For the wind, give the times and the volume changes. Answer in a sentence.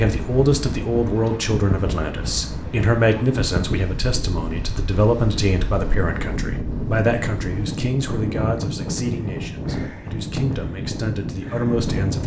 The wind can be heard from 0.0 to 12.2 s, at a steady volume.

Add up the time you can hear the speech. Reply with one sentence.
The speech can be heard for 12 seconds in total.